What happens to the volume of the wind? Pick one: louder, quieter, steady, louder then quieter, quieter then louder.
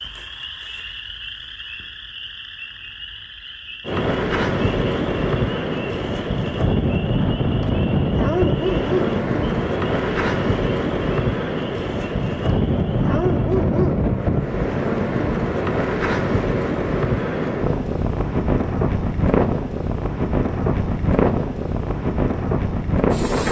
steady.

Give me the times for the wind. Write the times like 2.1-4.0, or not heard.
3.9-23.4.